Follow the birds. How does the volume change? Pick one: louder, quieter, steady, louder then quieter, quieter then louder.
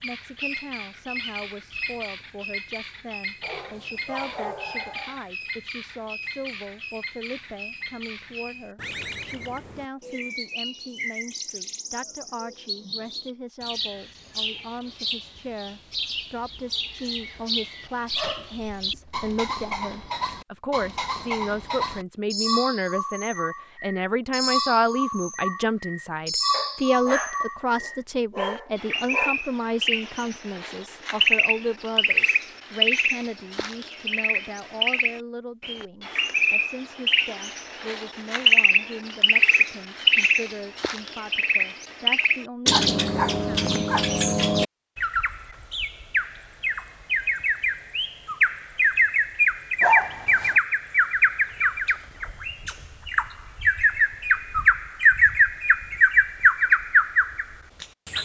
louder.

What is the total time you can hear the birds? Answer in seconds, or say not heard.
58 s.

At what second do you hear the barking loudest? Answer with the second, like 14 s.
50 s.